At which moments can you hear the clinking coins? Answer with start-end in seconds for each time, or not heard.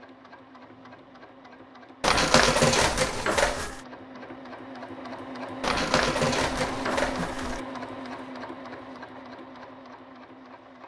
2.0-3.8, 5.6-7.6.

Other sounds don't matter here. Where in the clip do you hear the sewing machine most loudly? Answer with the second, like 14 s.
7 s.